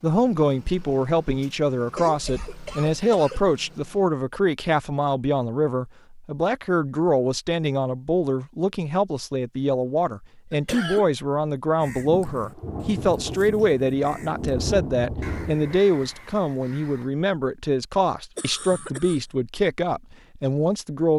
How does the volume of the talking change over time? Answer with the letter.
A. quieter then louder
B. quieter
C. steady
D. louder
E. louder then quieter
C.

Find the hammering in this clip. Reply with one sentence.
The hammering can't be heard in this clip.